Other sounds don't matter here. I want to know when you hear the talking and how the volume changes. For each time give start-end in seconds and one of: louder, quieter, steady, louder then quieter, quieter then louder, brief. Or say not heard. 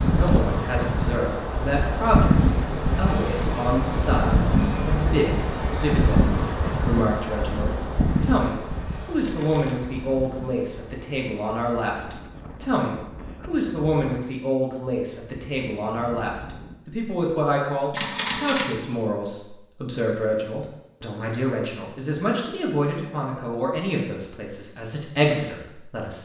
0.0-26.2 steady.